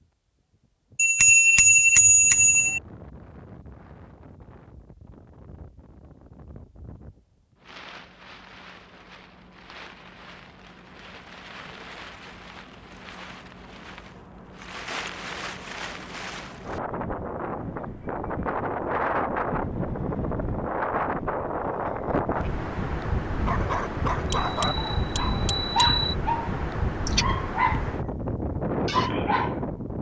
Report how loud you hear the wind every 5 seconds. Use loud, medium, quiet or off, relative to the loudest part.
quiet, quiet, quiet, loud, loud, loud.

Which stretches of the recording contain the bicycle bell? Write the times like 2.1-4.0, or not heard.
0.9-2.8, 24.3-26.1.